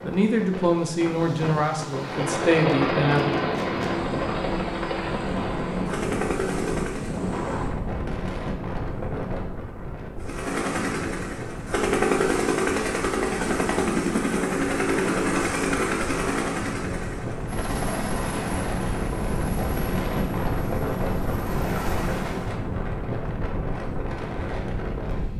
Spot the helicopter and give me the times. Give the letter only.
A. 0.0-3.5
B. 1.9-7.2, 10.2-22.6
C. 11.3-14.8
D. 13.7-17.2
B.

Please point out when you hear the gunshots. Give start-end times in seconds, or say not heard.
not heard.